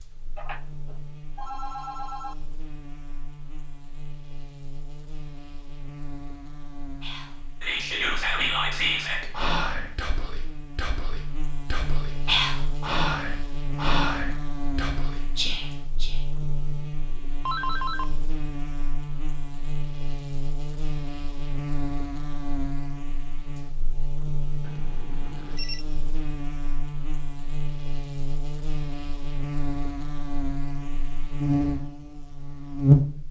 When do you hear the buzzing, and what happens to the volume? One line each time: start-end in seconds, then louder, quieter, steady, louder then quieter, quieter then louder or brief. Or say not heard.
0.0-33.2 louder.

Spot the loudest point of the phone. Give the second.
18 s.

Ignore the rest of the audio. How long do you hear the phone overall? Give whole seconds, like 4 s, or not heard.
4 s.